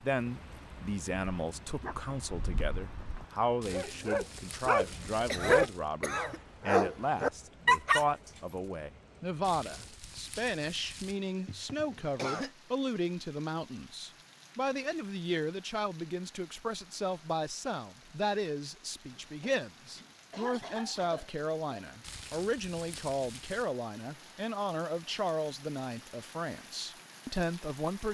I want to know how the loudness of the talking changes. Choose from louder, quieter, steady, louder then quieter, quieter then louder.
steady.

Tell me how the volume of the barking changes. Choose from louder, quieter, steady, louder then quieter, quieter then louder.
louder.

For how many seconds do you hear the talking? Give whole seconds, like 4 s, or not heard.
28 s.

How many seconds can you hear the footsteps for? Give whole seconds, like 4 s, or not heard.
not heard.